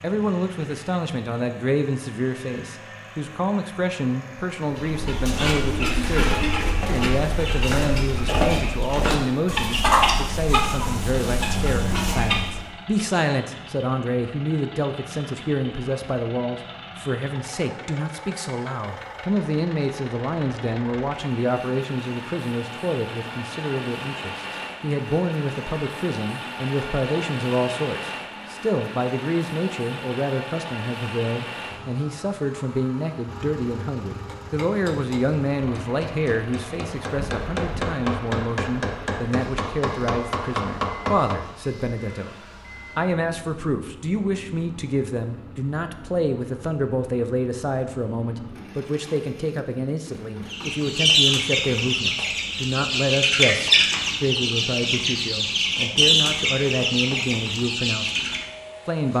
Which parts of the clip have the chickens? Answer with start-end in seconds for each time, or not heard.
4.7-12.7, 50.5-58.5.